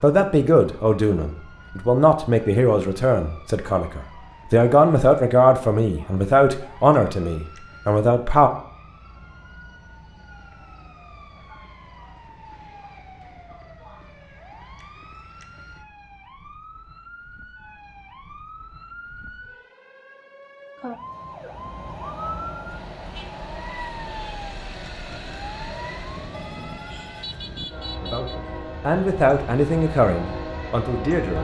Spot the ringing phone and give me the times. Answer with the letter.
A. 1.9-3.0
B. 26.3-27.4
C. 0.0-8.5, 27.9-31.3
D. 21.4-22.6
B.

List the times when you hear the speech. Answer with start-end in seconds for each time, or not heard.
0.0-8.5, 27.9-31.3.